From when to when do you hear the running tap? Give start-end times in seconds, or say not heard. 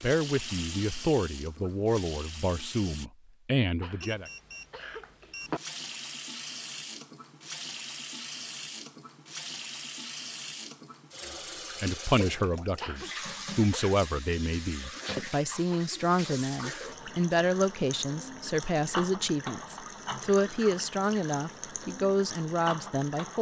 0.0-3.1, 5.4-23.3.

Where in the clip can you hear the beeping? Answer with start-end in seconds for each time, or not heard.
4.0-5.6.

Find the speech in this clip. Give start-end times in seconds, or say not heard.
0.0-4.3, 11.8-23.3.